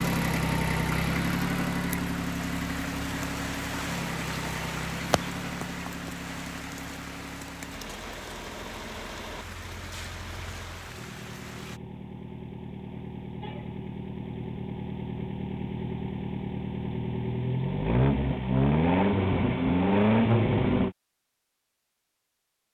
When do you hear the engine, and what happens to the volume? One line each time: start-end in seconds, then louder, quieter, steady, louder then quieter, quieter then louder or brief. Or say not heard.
0.0-20.9 quieter then louder.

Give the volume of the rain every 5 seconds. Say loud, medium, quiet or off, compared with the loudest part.
loud, loud, medium, off, off.